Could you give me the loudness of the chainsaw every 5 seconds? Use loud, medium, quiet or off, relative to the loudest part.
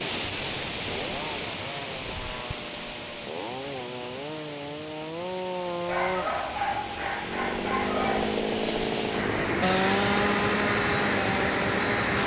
medium, loud, loud.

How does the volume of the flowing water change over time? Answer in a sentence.
The volume of the flowing water goes down, then up.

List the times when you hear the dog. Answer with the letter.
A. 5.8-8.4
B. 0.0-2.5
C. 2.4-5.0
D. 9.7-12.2
A.